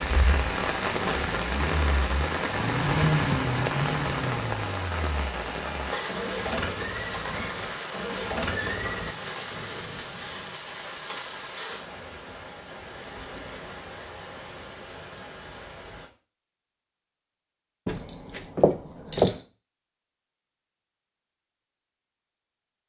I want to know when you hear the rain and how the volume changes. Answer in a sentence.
The rain can be heard from 0.0 to 16.1 s, getting quieter.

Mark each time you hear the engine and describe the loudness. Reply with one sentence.
You can hear the engine from 0.0 to 9.2 s, getting louder then quieter.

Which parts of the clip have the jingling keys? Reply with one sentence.
The jingling keys can be heard from 0.3 to 1.4 s, from 9.0 to 10.6 s and from 17.9 to 19.4 s.